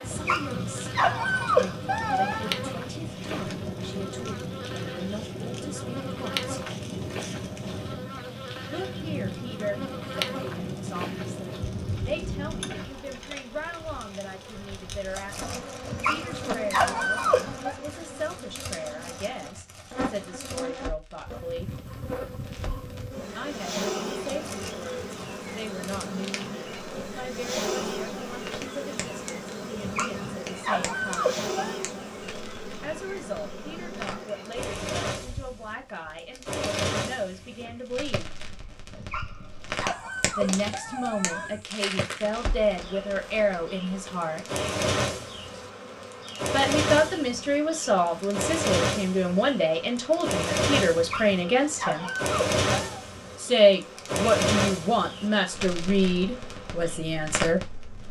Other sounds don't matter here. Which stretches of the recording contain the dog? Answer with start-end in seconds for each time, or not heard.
0.1-2.5, 15.8-17.8, 29.8-31.8, 38.9-41.5, 50.9-53.0.